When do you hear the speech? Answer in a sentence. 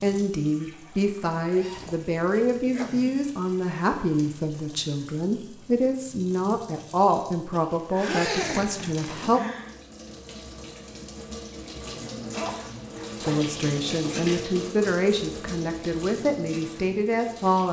You can hear the speech from 0.0 to 9.4 s and from 13.2 to 17.6 s.